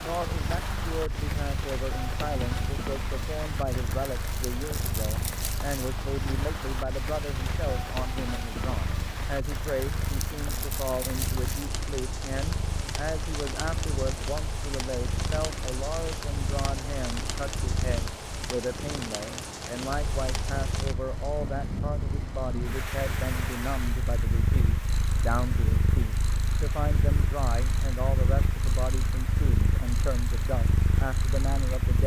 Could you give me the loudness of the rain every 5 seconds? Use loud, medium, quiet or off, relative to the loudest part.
loud, loud, loud, loud, loud, medium, medium.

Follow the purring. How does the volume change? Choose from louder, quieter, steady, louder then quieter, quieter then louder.
louder.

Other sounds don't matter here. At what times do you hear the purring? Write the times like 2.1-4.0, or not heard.
0.1-32.0.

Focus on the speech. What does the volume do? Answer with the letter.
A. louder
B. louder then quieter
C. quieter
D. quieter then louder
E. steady
E.